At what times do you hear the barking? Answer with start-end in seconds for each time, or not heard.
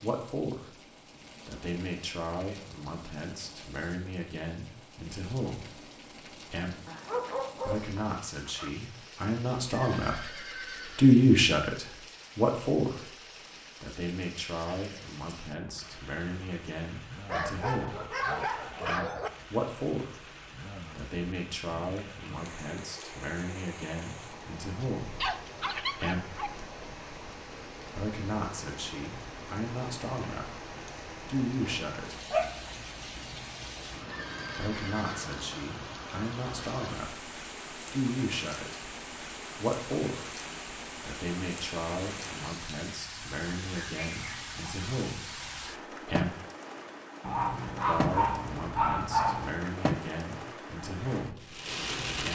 6.8-8.8, 17.2-19.3, 24.8-26.5, 32.3-33.4, 47.2-49.6.